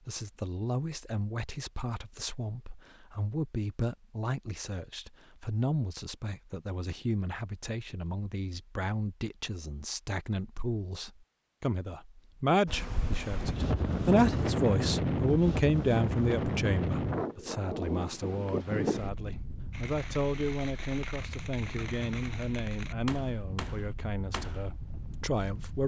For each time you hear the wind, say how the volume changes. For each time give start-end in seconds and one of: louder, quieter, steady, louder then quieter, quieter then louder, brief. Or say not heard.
12.7-25.8 quieter.